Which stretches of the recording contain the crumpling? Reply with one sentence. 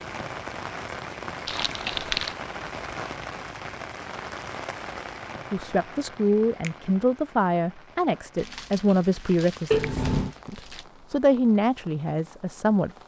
You can hear the crumpling from 1.4 to 2.4 s and from 8.3 to 10.8 s.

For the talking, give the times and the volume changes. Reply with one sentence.
The talking can be heard from 5.5 to 13.0 s, getting quieter then louder.